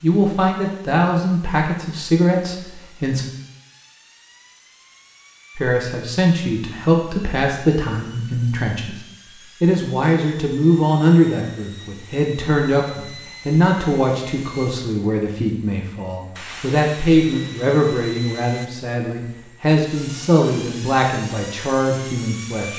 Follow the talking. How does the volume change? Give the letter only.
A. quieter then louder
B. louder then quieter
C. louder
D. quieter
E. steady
E.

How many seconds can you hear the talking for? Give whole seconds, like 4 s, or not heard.
20 s.